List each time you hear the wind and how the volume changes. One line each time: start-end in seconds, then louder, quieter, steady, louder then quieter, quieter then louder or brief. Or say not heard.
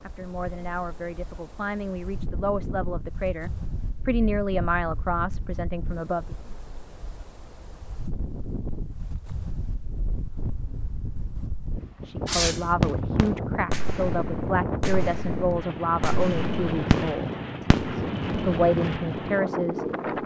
0.0-20.2 louder.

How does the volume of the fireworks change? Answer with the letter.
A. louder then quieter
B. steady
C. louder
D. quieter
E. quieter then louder
E.